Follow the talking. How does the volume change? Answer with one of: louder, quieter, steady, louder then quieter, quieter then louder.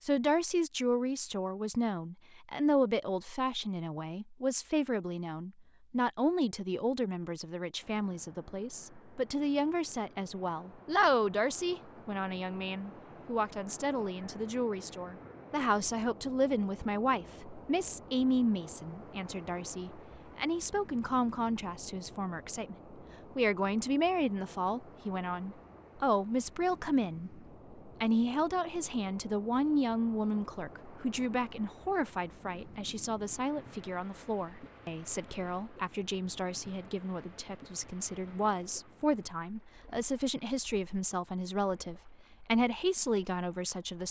steady.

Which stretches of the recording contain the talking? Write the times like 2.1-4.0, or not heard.
0.0-44.0.